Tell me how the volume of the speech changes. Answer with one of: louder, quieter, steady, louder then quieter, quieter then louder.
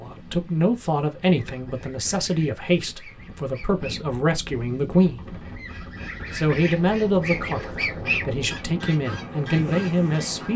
steady.